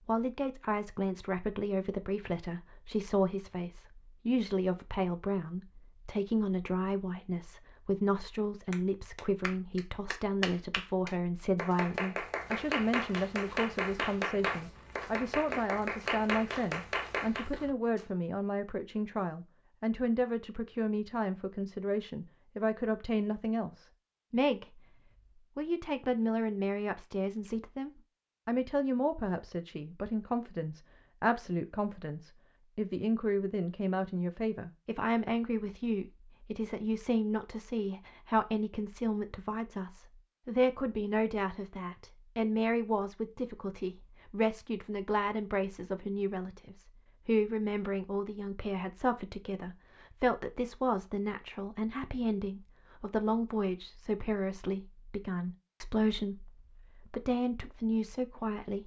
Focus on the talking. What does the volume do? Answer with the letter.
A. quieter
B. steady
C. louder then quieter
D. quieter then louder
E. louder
B.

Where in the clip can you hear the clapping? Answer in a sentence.
The clapping can be heard from 8.7 to 17.4 s.